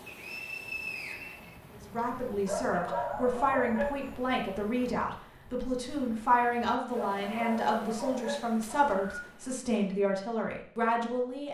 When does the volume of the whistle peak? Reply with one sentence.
The loudest moment of the whistle is at 1 second.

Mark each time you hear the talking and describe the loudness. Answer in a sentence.
The talking can be heard from 1.7 to 11.4 s, at a steady volume.